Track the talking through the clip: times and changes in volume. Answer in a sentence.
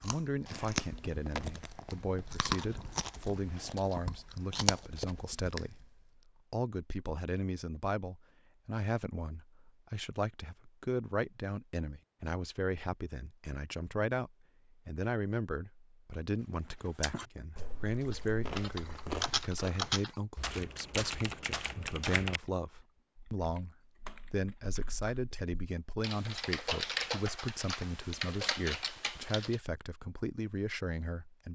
The talking can be heard from 0.0 to 31.5 s, at a steady volume.